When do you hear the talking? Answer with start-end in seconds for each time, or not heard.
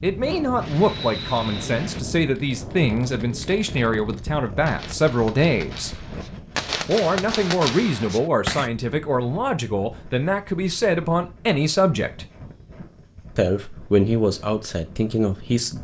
0.0-6.0, 6.8-12.2, 13.3-15.7.